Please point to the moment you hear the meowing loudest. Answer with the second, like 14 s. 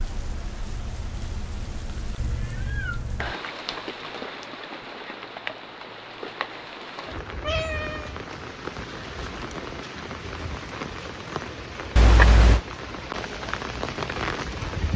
12 s.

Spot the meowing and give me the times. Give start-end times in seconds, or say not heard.
2.1-3.4, 7.4-8.2, 11.9-12.6.